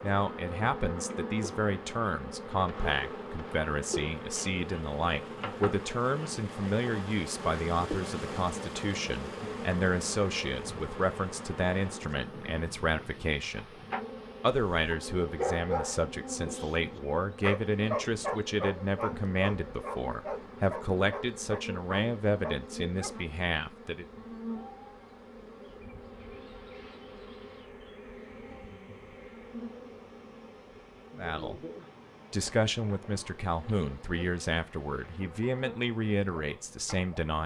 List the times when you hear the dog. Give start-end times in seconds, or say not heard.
14.5-23.1.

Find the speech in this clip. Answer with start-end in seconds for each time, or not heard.
0.0-13.7, 14.4-24.1, 31.1-31.6, 32.3-37.4.